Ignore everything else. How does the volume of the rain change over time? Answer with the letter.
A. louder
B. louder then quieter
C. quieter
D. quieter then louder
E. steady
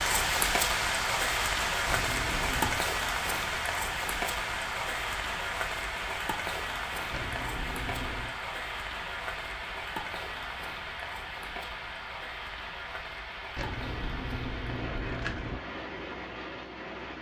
C.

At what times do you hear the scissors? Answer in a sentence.
The scissors can be heard from 1.9 to 2.9 s, from 7.1 to 8.3 s and from 13.6 to 15.6 s.